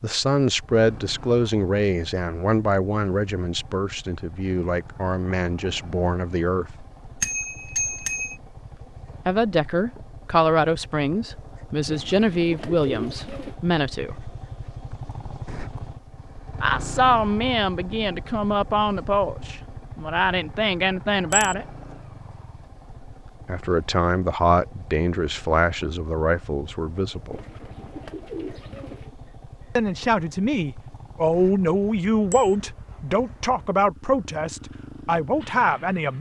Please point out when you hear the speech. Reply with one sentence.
You can hear the speech from 0.0 to 6.8 s, from 9.2 to 14.2 s, from 16.6 to 21.6 s, from 23.4 to 27.4 s and from 29.8 to 36.1 s.